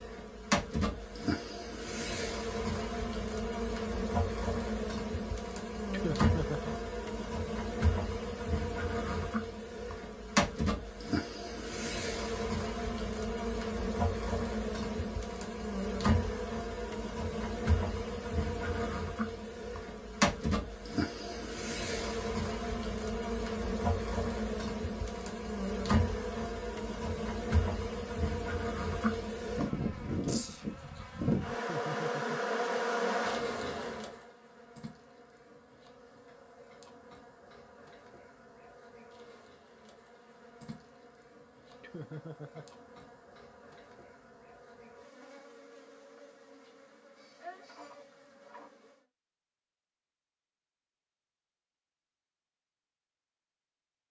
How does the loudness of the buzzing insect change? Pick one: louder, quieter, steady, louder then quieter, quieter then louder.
quieter.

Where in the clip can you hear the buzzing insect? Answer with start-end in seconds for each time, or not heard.
0.0-49.0.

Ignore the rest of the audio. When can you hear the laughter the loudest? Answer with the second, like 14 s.
6 s.